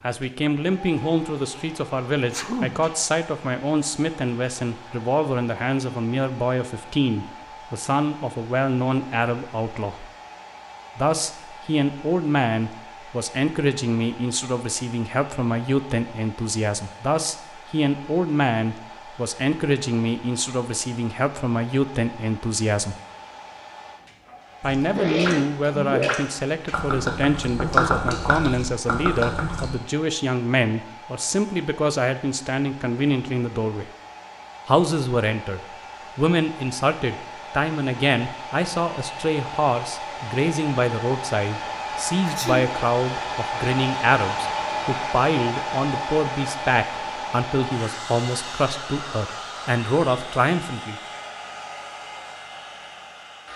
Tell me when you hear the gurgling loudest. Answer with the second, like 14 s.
28 s.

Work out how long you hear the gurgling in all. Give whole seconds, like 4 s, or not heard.
5 s.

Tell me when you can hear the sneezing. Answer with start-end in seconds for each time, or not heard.
2.3-2.8, 24.9-25.4, 42.2-42.8.